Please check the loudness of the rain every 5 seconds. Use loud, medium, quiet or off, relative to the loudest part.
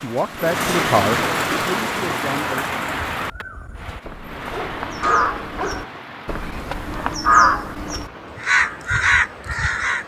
loud, quiet.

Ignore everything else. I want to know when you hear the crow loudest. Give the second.
7 s.